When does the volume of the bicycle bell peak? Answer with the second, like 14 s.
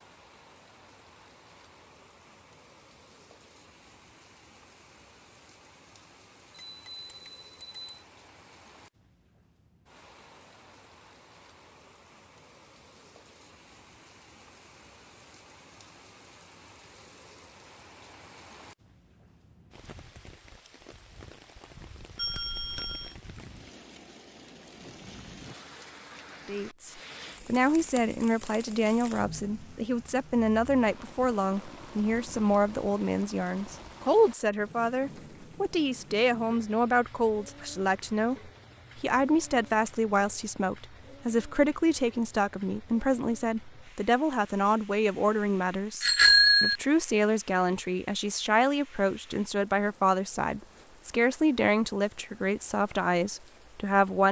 46 s.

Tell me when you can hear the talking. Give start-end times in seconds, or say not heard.
26.4-54.2.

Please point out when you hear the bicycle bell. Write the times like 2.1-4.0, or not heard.
6.5-8.0, 22.1-23.1, 46.0-46.8.